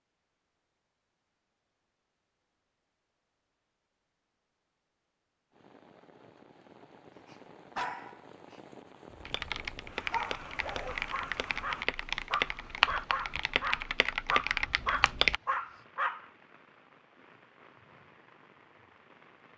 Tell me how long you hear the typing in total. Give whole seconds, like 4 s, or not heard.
6 s.